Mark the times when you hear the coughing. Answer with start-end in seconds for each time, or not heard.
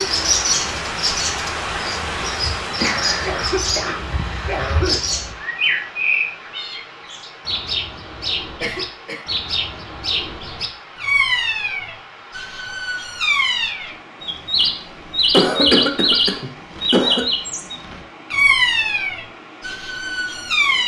3.2-5.0, 8.6-9.2, 15.3-17.3.